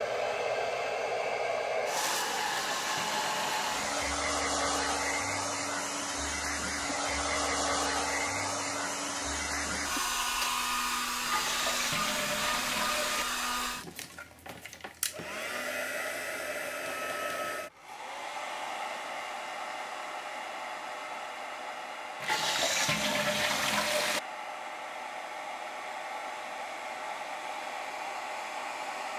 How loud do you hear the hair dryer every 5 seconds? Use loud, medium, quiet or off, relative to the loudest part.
loud, loud, loud, medium, medium, medium.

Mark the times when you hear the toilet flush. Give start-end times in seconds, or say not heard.
2.2-4.0, 11.2-13.2, 22.2-24.2.